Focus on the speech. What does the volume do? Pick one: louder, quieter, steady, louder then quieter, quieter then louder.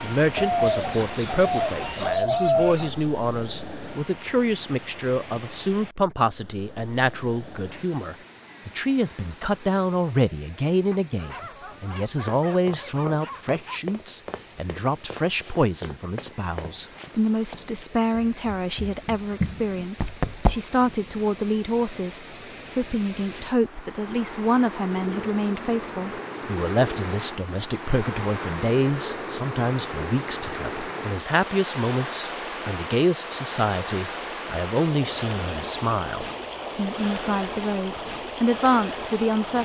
steady.